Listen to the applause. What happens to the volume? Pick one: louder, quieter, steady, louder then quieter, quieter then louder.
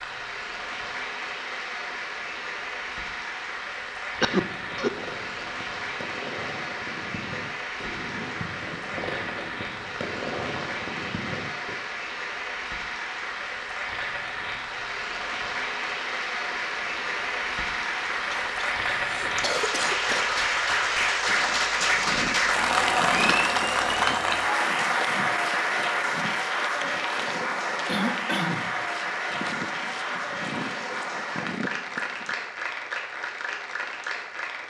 louder then quieter.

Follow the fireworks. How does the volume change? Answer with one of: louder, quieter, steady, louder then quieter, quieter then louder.
louder.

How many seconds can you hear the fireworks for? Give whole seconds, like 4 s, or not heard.
7 s.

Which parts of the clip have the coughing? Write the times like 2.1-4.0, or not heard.
4.2-4.9, 18.3-20.2, 27.9-28.8.